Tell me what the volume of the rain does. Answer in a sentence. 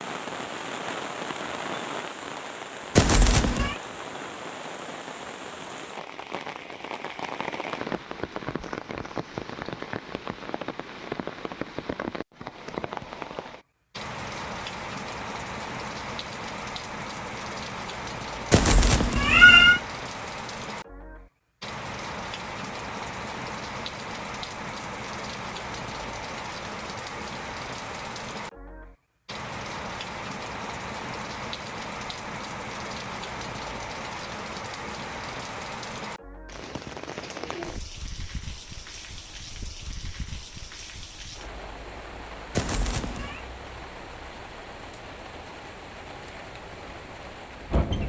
The loudness of the rain goes down.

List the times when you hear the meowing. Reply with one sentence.
You can hear the meowing from 3.0 to 3.8 s, from 18.5 to 19.8 s and from 42.5 to 43.4 s.